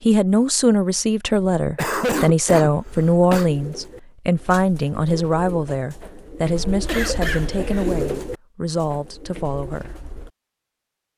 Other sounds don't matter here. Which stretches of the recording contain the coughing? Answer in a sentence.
The coughing can be heard from 1.8 to 3.5 s and from 6.8 to 7.9 s.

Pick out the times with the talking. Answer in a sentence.
The talking can be heard from 0.0 to 9.9 s.